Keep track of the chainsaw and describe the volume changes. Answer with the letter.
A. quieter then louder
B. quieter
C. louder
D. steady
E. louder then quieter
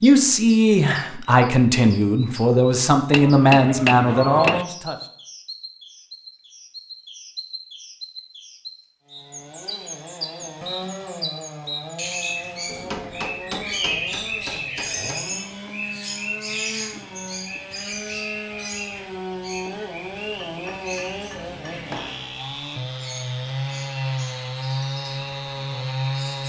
C.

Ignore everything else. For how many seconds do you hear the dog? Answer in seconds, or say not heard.
not heard.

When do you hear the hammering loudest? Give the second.
4 s.